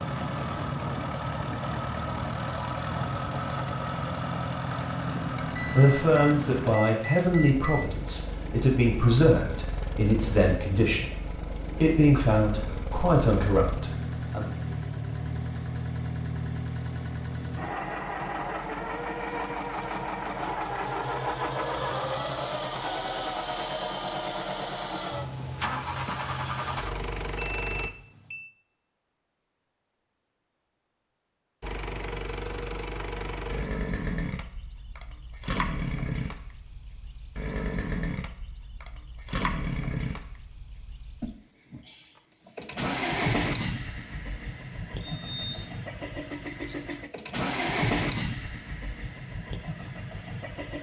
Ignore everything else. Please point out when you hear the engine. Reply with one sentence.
You can hear the engine from 0.0 to 27.9 s and from 31.6 to 50.7 s.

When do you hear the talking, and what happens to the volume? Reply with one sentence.
The talking can be heard from 5.5 to 14.5 s, at a steady volume.